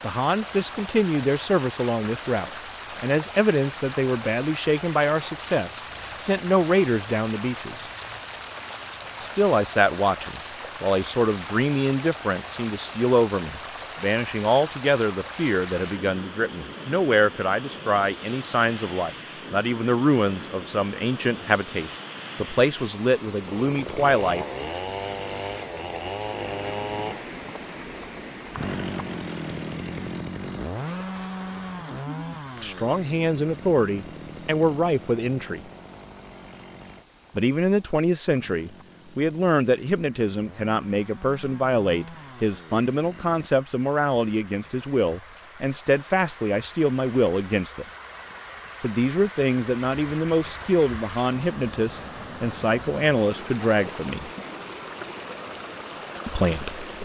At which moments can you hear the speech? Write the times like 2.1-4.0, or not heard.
0.0-7.8, 9.2-24.4, 32.6-35.6, 37.4-47.9, 48.8-54.3, 56.2-56.9.